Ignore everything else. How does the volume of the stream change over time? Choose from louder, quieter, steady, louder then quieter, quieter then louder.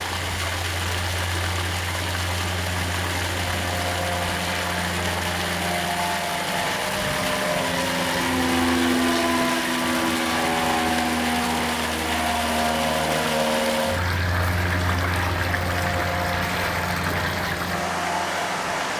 steady.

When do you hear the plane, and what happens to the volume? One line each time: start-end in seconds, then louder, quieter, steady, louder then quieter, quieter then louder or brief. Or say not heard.
0.0-18.9 louder then quieter.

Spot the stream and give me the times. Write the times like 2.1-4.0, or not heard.
0.0-18.9.